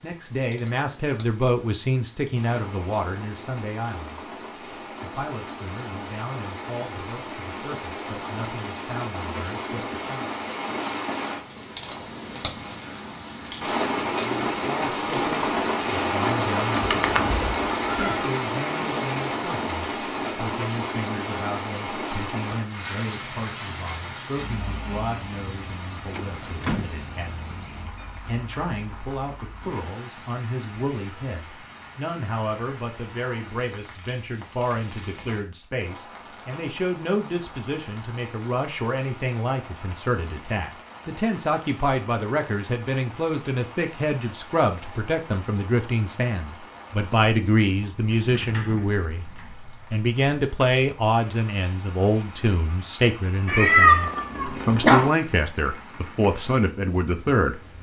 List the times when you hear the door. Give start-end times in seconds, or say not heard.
17.1-17.6, 26.1-26.9, 48.1-49.5.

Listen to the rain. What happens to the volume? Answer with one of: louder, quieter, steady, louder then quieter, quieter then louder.
louder then quieter.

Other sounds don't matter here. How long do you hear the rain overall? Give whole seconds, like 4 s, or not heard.
58 s.